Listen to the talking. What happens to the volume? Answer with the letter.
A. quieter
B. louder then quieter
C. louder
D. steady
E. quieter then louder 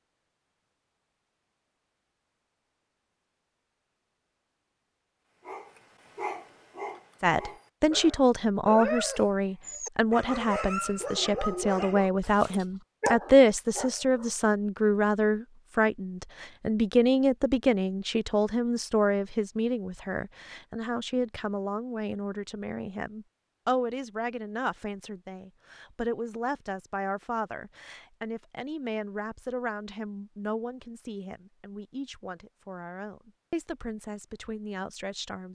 A.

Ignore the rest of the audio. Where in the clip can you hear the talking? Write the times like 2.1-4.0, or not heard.
7.2-35.4.